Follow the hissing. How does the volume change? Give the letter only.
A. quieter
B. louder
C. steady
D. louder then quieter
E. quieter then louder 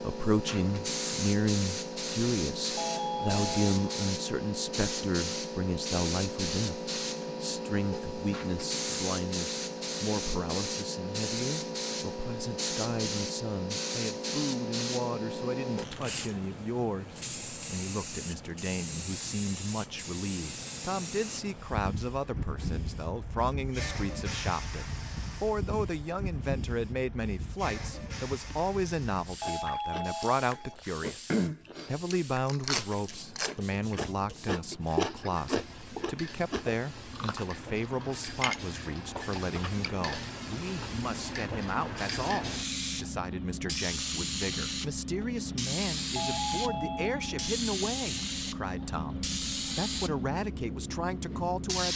E.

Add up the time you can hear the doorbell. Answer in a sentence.
The doorbell can be heard for 4 seconds in total.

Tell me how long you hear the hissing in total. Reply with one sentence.
The hissing can be heard for 52 seconds in total.